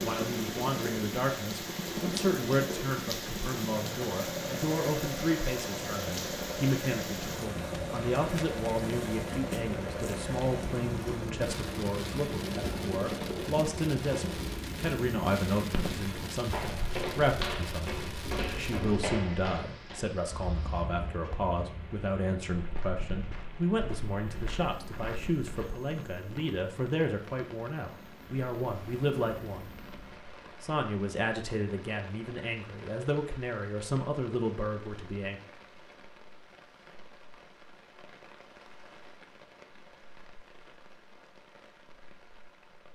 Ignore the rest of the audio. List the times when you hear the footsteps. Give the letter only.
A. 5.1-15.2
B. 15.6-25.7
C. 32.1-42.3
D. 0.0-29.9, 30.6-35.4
B.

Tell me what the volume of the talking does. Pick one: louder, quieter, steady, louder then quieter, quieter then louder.
steady.